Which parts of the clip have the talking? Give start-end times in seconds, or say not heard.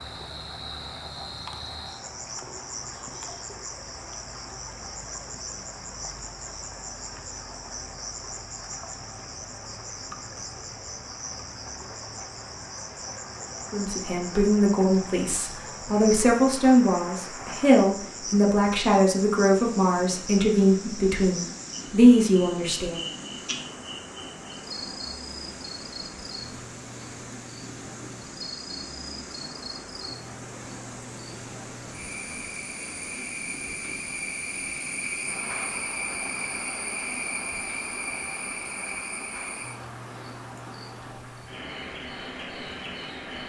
13.7-23.1.